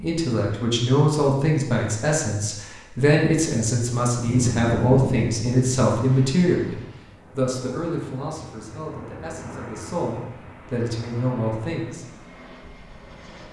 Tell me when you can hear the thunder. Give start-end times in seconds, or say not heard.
4.2-5.7.